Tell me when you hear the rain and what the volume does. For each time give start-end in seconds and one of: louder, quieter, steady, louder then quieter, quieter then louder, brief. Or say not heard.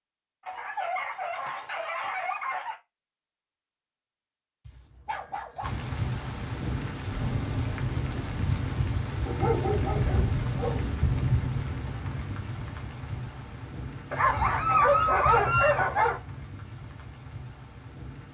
5.6-18.3 quieter.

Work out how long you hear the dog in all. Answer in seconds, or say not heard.
7 s.